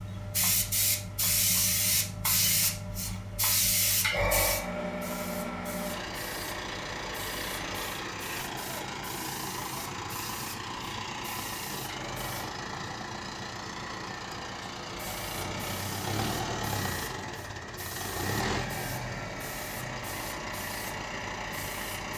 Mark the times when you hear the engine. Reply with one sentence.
You can hear the engine from 0.0 to 22.1 s.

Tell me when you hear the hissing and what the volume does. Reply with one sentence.
The hissing can be heard from 0.0 to 12.5 s, getting quieter; and from 14.9 to 22.1 s, at a steady volume.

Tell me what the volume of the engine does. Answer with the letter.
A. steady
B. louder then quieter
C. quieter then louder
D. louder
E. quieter
D.